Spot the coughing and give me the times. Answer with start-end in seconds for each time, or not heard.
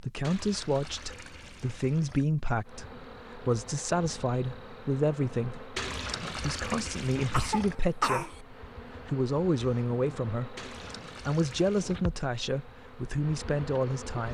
7.3-8.4.